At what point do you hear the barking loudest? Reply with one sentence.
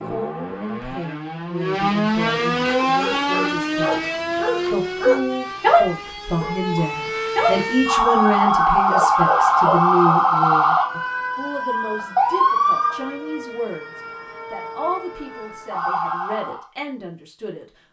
The loudest moment of the barking is at 6 seconds.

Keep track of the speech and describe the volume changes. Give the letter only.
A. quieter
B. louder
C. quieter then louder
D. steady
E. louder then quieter
E.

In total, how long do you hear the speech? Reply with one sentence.
You can hear the speech for 18 seconds altogether.